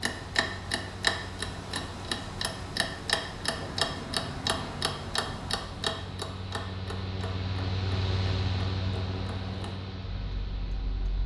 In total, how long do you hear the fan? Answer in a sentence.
You can hear the fan for 11 seconds altogether.